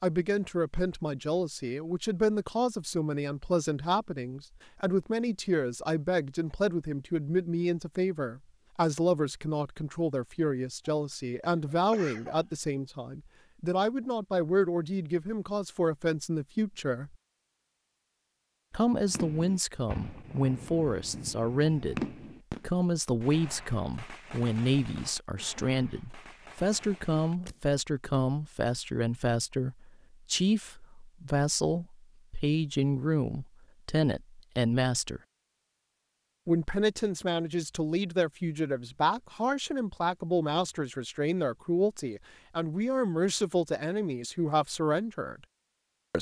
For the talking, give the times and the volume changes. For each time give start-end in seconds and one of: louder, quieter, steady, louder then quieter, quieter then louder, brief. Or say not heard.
0.0-17.1 steady
18.7-35.2 steady
36.5-45.4 steady.